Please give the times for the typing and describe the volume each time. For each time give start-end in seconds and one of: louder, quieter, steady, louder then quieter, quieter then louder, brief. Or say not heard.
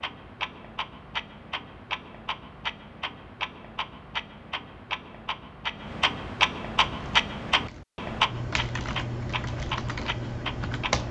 6.8-11.0 louder.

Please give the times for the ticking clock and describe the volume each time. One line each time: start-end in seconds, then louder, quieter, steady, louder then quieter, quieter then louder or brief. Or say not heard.
0.0-11.0 louder then quieter.